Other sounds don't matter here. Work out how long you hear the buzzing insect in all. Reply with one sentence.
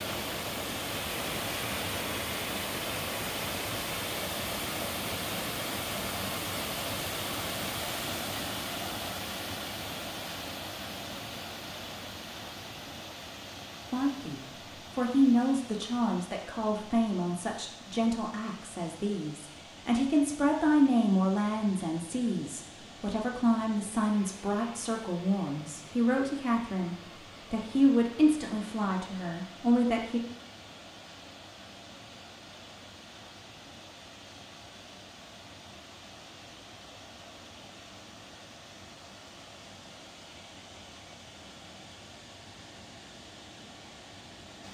The buzzing insect can't be heard in this clip.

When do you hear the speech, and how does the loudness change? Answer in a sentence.
The speech can be heard from 13.9 to 30.2 s, at a steady volume.